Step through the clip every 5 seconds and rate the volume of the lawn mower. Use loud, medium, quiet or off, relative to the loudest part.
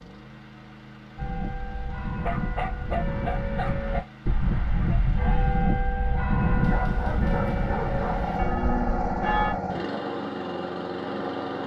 quiet, loud, loud.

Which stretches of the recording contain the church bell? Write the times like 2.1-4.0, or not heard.
1.1-9.6.